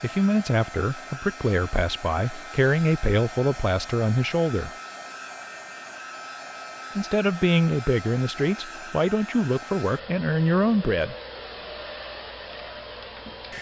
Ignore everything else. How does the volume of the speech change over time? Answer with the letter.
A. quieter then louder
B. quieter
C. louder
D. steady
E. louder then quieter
D.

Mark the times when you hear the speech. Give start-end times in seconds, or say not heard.
0.0-4.8, 7.0-11.2.